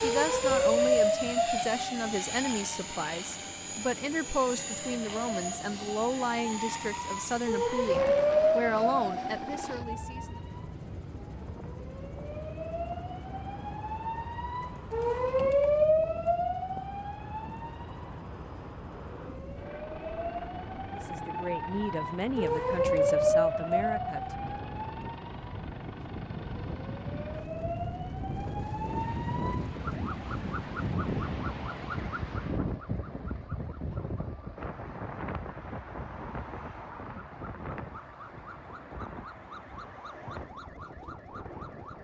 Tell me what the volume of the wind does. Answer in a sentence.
The volume of the wind goes up, then down.